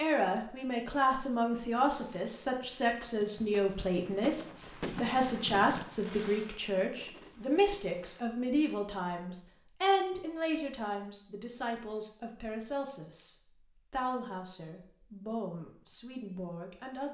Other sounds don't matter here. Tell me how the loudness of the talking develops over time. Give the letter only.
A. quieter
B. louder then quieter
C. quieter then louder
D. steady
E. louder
A.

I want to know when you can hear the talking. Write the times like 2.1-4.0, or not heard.
0.0-17.1.